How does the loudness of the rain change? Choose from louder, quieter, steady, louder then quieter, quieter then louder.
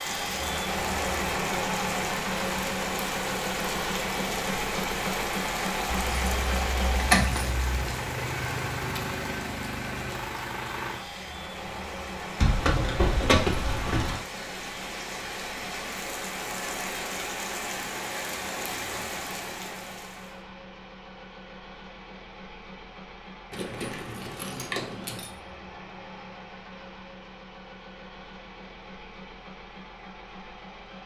quieter then louder.